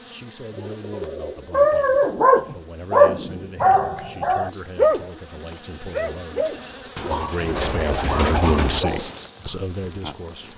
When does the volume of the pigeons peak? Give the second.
8 s.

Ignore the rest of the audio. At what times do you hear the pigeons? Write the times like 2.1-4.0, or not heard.
0.5-2.2, 7.0-8.8.